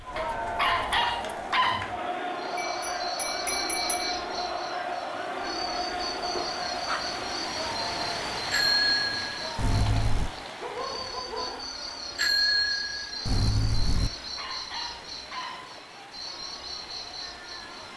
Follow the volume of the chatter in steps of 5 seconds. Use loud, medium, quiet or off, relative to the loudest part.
loud, loud, quiet, quiet.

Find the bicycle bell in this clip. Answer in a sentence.
The bicycle bell can be heard from 2.5 to 4.2 s, from 8.5 to 10.3 s and from 12.2 to 14.1 s.